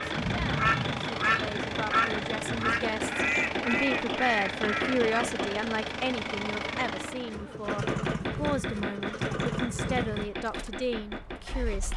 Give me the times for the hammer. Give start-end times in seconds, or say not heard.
0.0-5.5, 7.7-11.9.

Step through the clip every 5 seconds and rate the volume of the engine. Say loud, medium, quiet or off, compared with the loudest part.
loud, loud, medium.